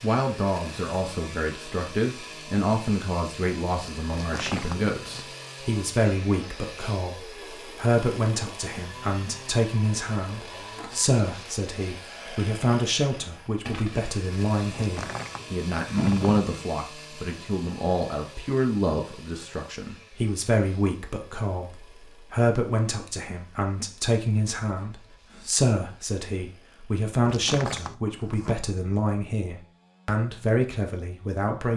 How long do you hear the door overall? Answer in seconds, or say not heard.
4 s.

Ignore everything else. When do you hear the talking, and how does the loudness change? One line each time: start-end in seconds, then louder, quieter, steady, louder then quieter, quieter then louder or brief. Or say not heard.
0.0-31.7 steady.